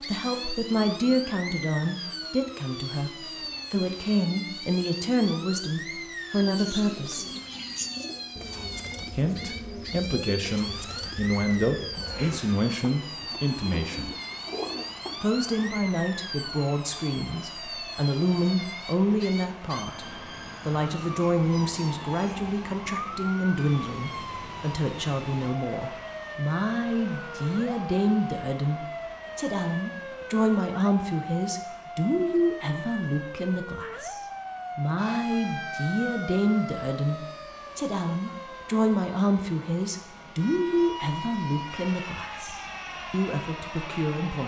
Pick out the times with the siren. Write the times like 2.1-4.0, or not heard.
0.0-44.4.